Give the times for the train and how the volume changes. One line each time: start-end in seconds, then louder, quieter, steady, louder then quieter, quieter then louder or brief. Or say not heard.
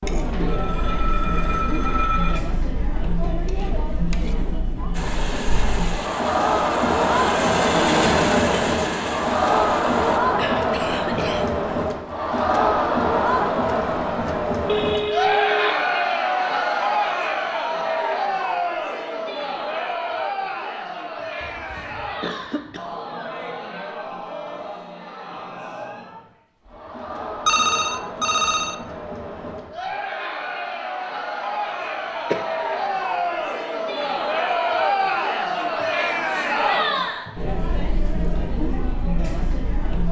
4.9-10.2 louder then quieter.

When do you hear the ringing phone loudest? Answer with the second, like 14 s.
28 s.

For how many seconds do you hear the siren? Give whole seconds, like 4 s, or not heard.
not heard.